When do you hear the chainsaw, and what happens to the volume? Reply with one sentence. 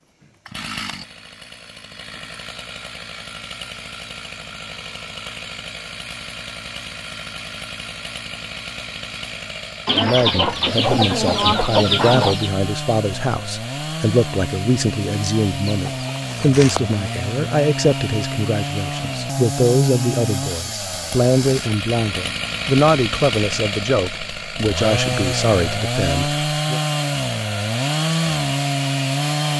You can hear the chainsaw from 0.0 to 29.5 s, getting louder.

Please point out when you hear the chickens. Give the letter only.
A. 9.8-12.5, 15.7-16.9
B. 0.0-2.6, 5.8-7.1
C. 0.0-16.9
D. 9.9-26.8
A.